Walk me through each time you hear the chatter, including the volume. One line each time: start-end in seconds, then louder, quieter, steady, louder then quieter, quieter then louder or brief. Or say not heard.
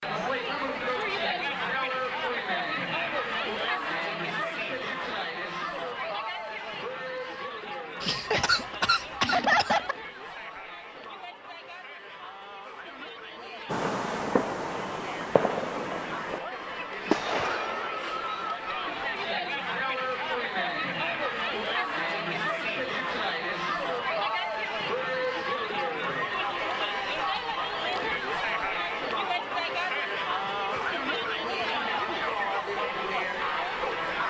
0.0-34.2 quieter then louder.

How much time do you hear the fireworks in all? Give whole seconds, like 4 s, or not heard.
4 s.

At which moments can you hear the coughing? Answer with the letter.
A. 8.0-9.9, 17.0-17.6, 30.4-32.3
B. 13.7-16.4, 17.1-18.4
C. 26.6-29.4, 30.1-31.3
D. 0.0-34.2
A.